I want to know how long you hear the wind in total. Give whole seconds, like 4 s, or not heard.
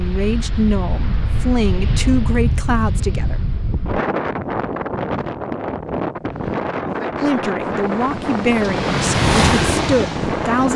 11 s.